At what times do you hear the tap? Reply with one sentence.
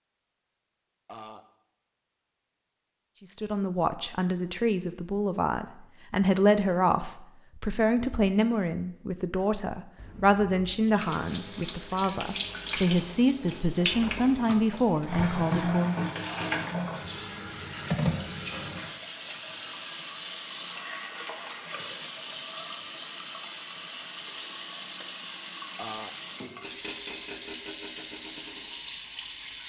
You can hear the tap from 10.8 to 29.6 s.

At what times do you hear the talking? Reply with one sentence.
You can hear the talking from 3.2 to 16.1 s.